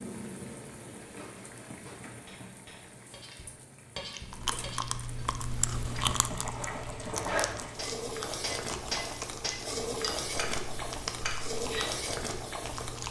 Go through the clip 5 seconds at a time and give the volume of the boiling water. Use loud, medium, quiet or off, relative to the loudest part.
medium, loud, loud.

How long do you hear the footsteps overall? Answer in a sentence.
You can't hear the footsteps here.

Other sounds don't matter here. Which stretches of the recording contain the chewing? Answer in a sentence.
The chewing can be heard from 4.2 to 13.0 s.